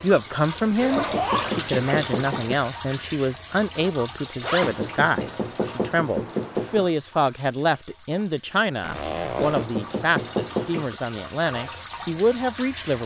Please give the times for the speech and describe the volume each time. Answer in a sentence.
You can hear the speech from 0.0 to 13.0 s, at a steady volume.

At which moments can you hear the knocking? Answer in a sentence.
You can hear the knocking from 0.9 to 2.5 s, from 4.6 to 6.9 s and from 9.3 to 11.0 s.